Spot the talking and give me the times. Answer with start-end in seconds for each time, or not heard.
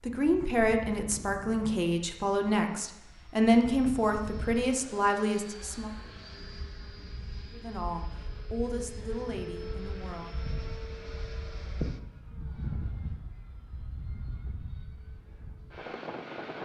0.0-5.9, 7.5-10.4.